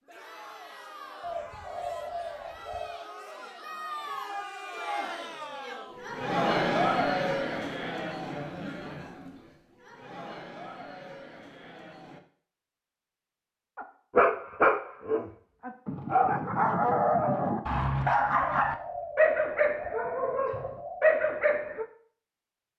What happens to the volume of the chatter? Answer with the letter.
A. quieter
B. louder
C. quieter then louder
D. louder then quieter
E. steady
D.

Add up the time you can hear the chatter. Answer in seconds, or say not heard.
12 s.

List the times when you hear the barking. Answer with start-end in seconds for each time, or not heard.
13.8-21.9.